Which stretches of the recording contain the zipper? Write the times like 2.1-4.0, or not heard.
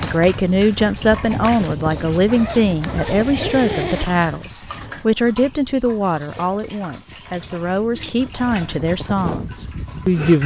2.2-4.1.